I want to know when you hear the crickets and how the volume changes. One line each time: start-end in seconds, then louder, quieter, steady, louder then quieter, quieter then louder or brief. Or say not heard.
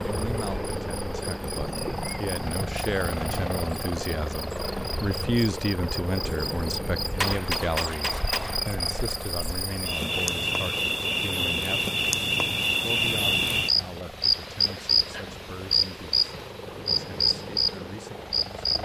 0.0-18.8 louder.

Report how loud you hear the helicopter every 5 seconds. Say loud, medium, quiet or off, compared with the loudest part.
loud, loud, medium, medium.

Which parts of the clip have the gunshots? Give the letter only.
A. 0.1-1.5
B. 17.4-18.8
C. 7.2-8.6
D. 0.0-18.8
C.